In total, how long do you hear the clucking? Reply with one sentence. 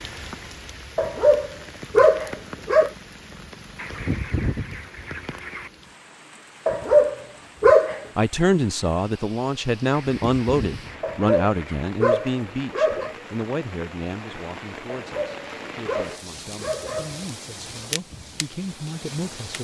You can hear the clucking for 4 seconds altogether.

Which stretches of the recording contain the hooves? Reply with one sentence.
You can't hear the hooves here.